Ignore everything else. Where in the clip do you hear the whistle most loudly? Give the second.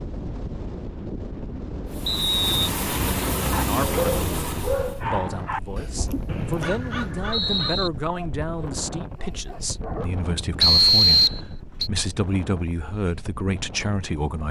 11 s.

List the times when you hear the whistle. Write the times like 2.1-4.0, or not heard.
2.0-2.5, 6.2-7.9, 10.6-11.9.